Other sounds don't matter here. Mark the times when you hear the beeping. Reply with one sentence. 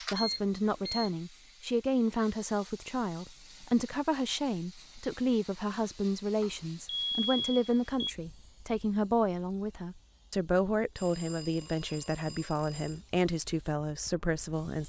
You can hear the beeping from 0.1 to 1.1 s, from 6.4 to 7.8 s and from 10.9 to 13.0 s.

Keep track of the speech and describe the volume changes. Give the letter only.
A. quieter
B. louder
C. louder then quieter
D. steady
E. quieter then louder
D.